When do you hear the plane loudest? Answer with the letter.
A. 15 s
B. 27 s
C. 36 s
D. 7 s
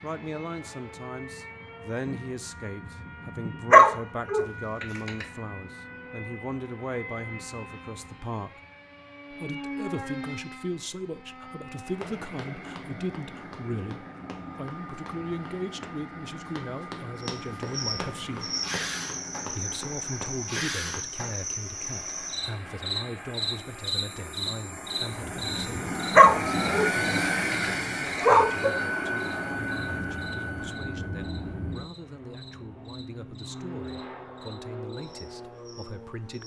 B.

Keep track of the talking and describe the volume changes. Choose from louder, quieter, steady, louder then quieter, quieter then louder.
quieter.